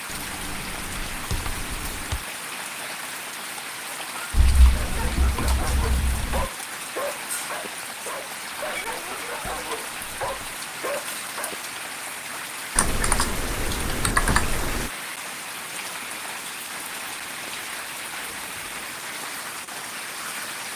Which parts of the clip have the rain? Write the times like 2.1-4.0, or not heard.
0.0-20.7.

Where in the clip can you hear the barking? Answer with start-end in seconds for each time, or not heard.
4.8-11.6.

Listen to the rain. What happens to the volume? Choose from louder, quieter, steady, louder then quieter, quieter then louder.
steady.